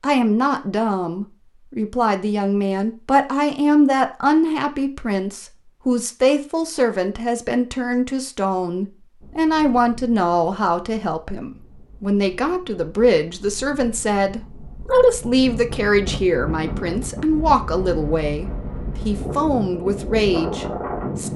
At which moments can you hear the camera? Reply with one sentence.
The camera can't be heard in this clip.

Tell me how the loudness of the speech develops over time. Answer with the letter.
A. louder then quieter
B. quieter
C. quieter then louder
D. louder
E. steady
E.